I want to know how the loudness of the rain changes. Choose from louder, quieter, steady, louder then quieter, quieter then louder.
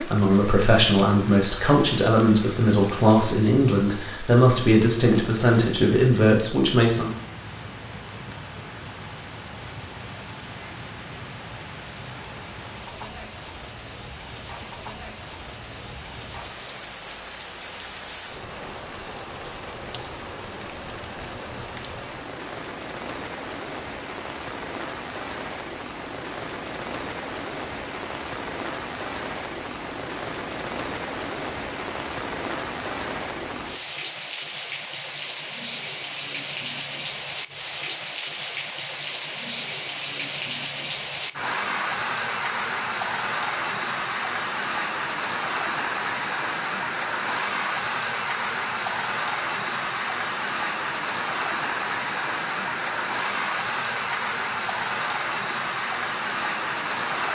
louder.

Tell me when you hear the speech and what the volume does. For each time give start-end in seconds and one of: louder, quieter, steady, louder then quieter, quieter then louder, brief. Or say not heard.
0.0-7.1 steady.